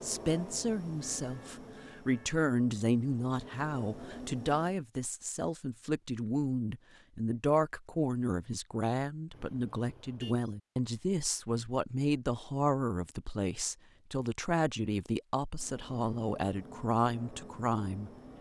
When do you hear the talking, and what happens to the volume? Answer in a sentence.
The talking can be heard from 0.0 to 18.1 s, at a steady volume.